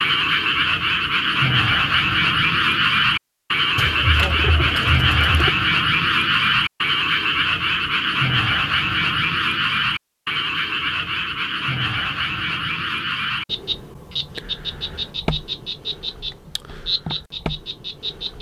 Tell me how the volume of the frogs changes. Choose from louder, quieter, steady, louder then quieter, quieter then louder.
quieter.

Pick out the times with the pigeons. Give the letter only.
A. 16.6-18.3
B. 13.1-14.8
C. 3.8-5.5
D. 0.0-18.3
C.